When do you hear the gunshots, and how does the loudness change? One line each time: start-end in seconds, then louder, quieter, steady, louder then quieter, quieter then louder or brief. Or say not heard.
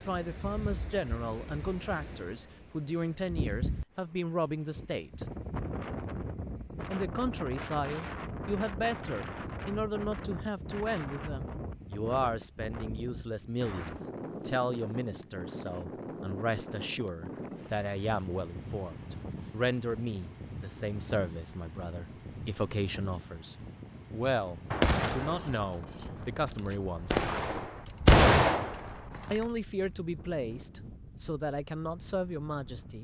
24.7-29.4 quieter then louder.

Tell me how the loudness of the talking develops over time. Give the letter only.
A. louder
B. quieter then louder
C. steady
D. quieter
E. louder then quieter
C.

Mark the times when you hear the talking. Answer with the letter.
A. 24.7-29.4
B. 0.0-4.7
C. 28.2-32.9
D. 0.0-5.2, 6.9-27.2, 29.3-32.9
D.